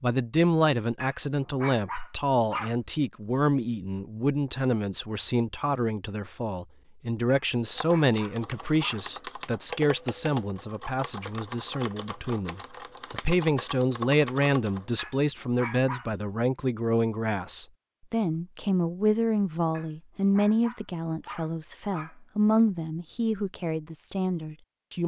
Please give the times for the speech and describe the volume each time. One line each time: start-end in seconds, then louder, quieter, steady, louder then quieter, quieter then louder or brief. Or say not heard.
0.0-25.0 steady.